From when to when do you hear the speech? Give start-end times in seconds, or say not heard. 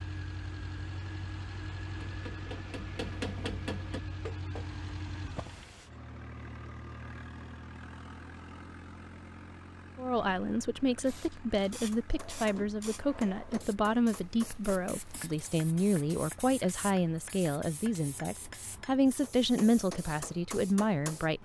9.9-21.4.